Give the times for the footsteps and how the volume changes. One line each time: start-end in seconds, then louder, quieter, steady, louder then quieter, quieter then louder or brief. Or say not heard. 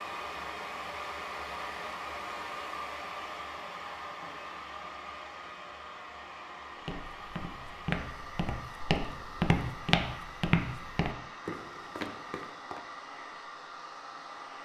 6.8-12.8 louder then quieter.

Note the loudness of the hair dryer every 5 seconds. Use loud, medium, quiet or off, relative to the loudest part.
loud, medium, medium.